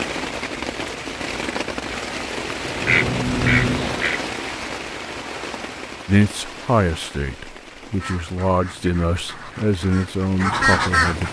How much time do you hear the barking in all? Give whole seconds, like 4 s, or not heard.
not heard.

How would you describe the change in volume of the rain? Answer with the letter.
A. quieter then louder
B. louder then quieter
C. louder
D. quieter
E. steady
D.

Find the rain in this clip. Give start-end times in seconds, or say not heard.
0.0-11.2.